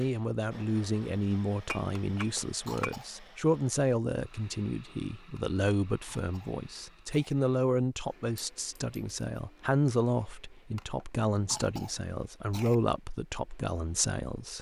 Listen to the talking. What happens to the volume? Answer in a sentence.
The loudness of the talking stays about the same.